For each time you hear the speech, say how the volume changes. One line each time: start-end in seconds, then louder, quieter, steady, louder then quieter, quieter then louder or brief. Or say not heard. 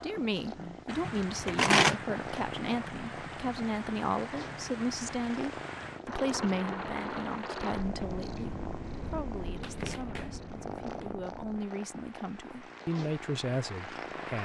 0.0-14.3 quieter then louder.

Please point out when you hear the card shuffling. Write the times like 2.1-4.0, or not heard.
1.1-1.9, 9.6-11.2.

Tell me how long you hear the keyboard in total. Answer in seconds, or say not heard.
not heard.